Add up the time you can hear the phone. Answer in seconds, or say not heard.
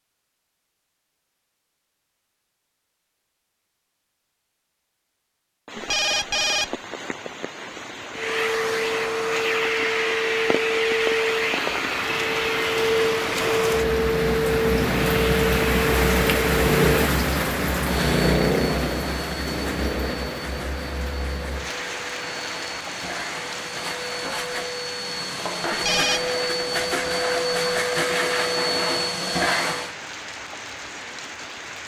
2 s.